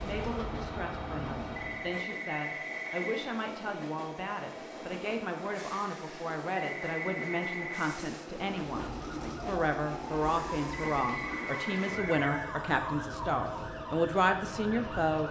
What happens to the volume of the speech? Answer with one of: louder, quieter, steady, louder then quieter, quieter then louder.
louder.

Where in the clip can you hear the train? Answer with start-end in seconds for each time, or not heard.
0.1-15.2.